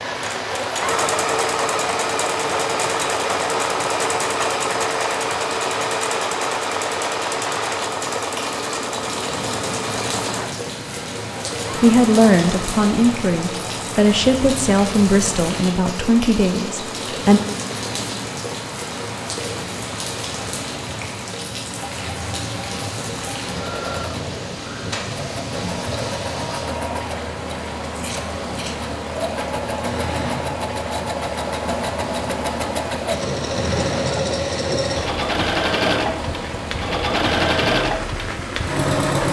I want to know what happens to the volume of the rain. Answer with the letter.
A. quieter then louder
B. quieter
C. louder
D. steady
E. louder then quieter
D.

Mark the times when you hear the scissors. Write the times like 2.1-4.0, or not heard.
27.9-28.9.